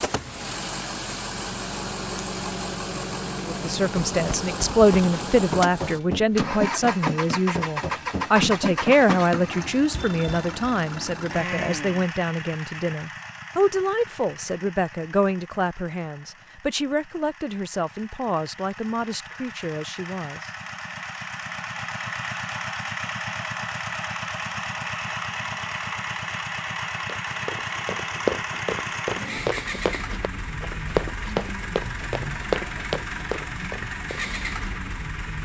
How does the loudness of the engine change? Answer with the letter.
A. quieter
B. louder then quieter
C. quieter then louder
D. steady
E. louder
C.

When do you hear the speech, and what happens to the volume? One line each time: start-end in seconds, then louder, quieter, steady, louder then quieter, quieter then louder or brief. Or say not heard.
3.5-20.5 quieter.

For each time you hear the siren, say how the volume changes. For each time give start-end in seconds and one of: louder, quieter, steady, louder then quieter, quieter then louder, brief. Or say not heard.
not heard.